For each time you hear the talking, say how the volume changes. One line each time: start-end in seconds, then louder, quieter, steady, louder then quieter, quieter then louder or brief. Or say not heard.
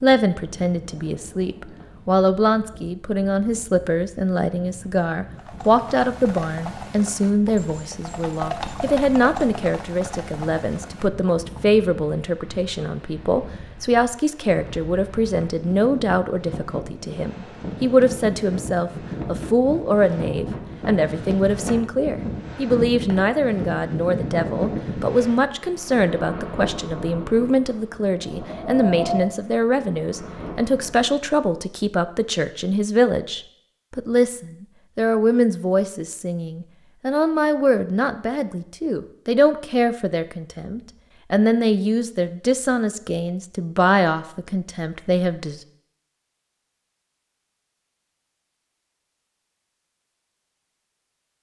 0.0-45.6 steady.